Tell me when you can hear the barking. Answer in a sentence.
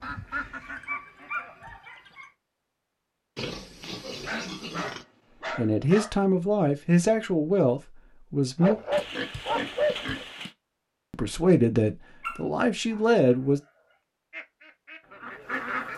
You can hear the barking from 0.6 to 2.3 s, from 4.2 to 6.2 s, from 8.6 to 10.2 s and from 12.2 to 13.0 s.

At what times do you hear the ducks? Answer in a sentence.
The ducks can be heard from 0.0 to 1.8 s and from 14.3 to 15.9 s.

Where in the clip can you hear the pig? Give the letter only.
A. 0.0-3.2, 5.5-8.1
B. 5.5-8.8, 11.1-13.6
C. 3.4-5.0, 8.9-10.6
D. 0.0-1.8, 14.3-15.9
C.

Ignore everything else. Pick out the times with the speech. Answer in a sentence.
The speech can be heard from 5.5 to 8.8 s and from 11.1 to 13.6 s.